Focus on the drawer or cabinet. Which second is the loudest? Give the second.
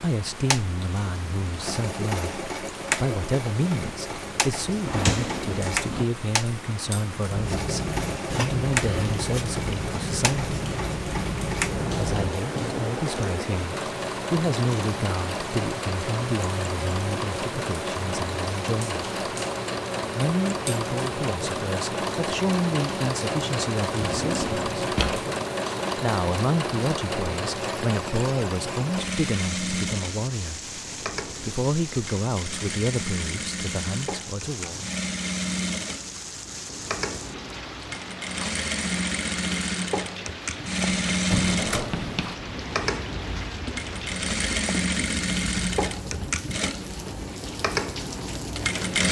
5 s.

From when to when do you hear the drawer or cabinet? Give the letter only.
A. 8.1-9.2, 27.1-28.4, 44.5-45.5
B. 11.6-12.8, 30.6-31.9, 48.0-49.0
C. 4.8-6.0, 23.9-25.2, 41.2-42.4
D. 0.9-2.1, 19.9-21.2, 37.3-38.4
C.